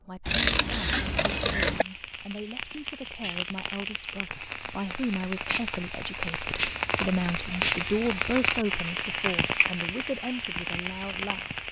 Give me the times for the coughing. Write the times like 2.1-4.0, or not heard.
0.9-1.9.